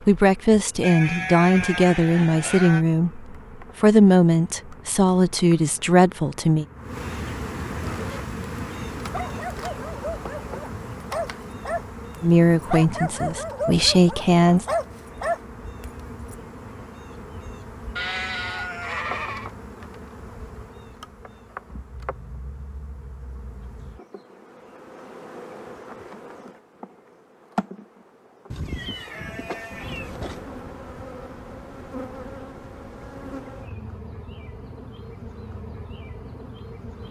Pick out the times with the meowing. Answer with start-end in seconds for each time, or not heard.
28.6-30.1.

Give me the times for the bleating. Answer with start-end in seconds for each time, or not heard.
0.8-2.9, 17.9-19.5, 28.5-30.4.